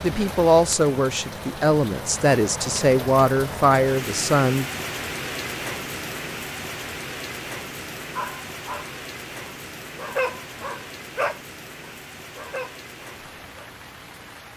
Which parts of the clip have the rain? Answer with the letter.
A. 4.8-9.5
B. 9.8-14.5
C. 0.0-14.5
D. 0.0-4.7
C.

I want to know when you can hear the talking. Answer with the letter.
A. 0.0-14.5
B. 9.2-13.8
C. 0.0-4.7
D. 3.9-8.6
C.